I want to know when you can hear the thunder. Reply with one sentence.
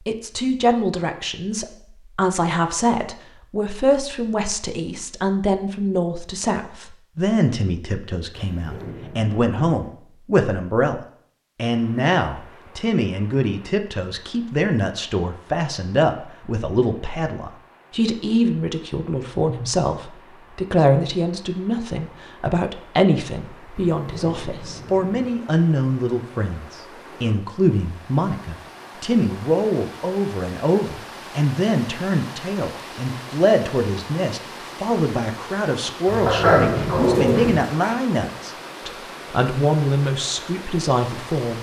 The thunder can be heard from 8.3 to 9.9 s, from 23.9 to 25.3 s and from 36.0 to 37.6 s.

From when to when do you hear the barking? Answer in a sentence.
The barking can be heard from 36.2 to 38.0 s.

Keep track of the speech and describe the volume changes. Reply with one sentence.
The loudness of the speech stays about the same.